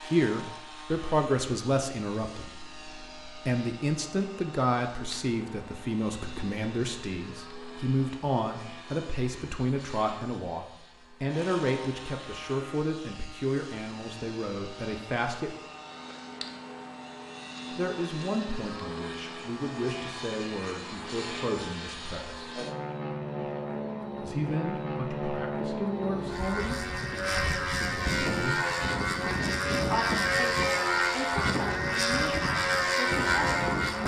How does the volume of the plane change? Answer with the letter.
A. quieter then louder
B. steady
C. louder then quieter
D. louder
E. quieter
D.